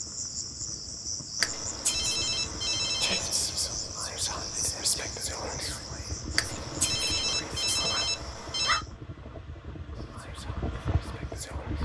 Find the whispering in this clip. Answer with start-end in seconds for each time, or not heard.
3.0-8.1, 9.9-11.8.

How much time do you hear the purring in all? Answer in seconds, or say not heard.
not heard.